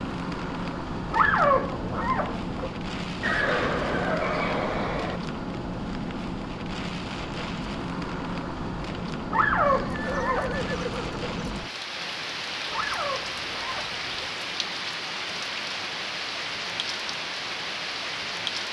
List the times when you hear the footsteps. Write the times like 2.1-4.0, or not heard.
not heard.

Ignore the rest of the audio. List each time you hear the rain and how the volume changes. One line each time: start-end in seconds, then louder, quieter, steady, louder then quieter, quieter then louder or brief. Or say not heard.
0.0-18.6 steady.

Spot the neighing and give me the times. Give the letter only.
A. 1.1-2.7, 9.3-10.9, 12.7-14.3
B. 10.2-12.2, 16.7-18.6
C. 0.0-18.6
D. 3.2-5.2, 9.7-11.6
D.